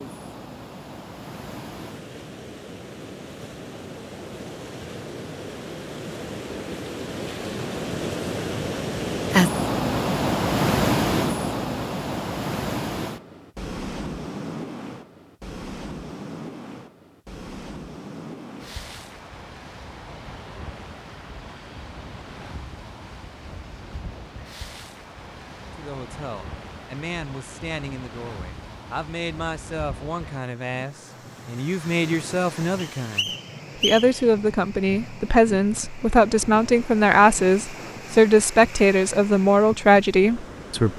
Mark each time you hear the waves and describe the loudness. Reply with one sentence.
You can hear the waves from 0.0 to 40.9 s, getting louder then quieter.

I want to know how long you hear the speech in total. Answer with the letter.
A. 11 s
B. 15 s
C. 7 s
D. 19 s
B.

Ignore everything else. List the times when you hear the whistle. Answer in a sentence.
You can hear the whistle from 33.0 to 34.2 s.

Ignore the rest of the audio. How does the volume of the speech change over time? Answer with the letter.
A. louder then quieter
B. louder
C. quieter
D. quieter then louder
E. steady
B.